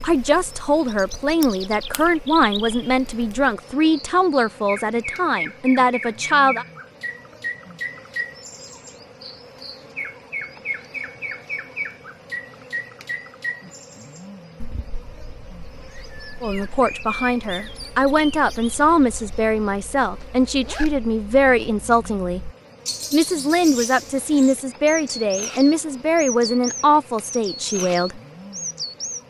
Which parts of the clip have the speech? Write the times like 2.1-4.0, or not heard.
0.0-6.7, 16.4-22.4, 23.1-28.2.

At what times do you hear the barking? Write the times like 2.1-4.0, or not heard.
not heard.